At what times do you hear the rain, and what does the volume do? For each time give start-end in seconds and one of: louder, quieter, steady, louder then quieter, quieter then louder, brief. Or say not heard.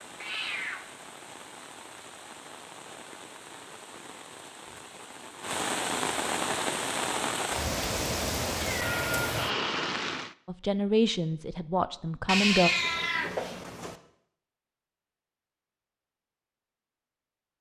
0.0-10.3 louder.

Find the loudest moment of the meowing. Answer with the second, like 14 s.
13 s.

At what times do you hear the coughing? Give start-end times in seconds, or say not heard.
not heard.